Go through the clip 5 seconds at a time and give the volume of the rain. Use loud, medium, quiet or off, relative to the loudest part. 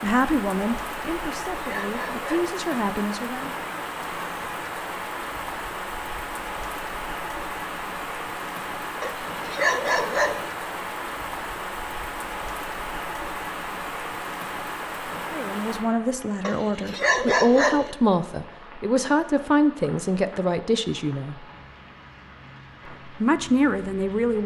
loud, loud, loud, medium, quiet.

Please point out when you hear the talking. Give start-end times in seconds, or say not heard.
0.0-3.5, 15.3-21.4, 23.1-24.4.